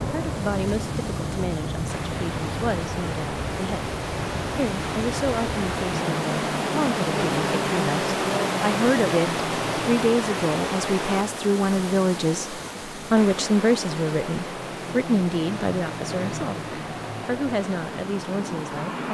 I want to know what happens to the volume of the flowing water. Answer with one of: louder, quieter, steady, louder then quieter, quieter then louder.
louder then quieter.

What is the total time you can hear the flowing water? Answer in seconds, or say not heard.
19 s.